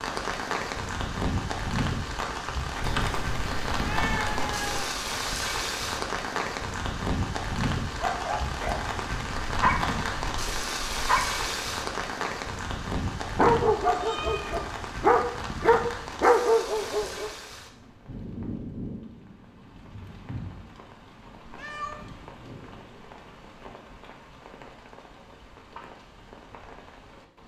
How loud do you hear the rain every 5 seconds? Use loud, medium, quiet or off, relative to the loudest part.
loud, loud, loud, medium, quiet, quiet.